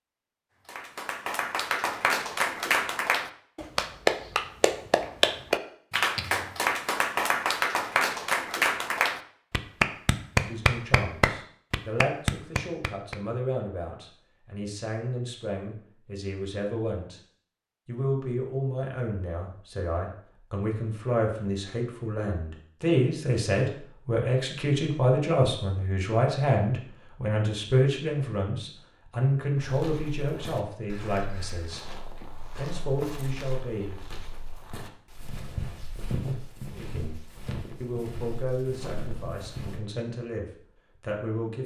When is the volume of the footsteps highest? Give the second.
36 s.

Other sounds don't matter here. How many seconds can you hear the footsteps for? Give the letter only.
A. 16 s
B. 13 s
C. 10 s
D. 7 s
C.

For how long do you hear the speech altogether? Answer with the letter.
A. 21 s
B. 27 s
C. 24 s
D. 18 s
B.